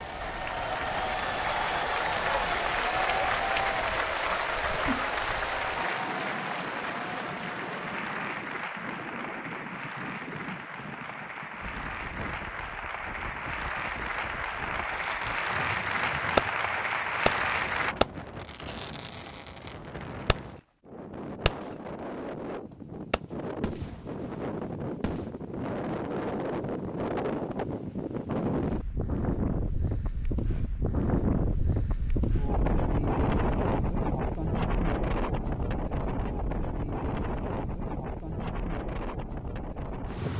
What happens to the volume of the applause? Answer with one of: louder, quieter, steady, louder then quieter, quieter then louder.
quieter then louder.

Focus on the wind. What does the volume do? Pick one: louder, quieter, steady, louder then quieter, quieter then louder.
louder.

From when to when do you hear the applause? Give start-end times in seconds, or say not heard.
0.0-17.9.